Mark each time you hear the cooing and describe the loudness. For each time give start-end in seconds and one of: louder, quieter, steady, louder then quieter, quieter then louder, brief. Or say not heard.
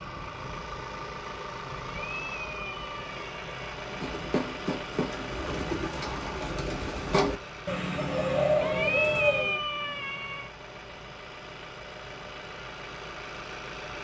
3.9-9.6 louder.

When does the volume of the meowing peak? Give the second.
9 s.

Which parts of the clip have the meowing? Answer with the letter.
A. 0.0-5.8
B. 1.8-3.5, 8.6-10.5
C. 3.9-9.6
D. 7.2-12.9
B.